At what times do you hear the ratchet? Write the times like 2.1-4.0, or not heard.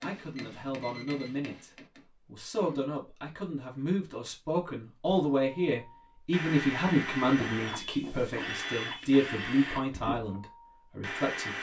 not heard.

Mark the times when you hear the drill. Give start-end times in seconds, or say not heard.
5.3-11.5.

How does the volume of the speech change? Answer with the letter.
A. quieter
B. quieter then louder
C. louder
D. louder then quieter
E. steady
C.